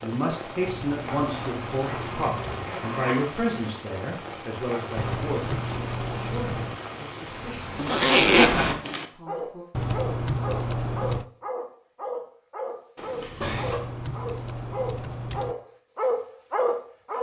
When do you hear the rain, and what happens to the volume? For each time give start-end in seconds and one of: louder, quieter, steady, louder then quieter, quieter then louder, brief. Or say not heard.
0.0-8.8 steady.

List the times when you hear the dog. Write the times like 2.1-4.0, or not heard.
9.2-17.1.